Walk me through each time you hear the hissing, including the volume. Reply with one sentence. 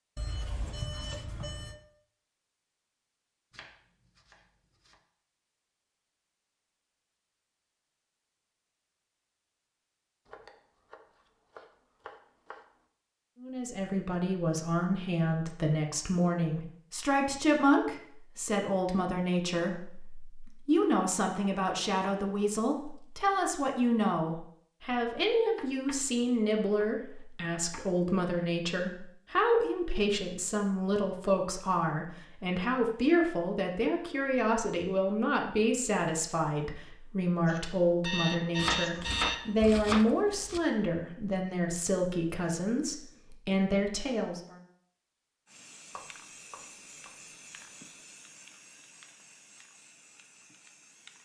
You can hear the hissing from 45.5 to 51.1 s, getting quieter.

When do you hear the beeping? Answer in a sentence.
You can hear the beeping from 0.1 to 1.8 s and from 37.5 to 39.5 s.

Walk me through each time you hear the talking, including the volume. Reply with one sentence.
The talking can be heard from 13.4 to 44.5 s, at a steady volume.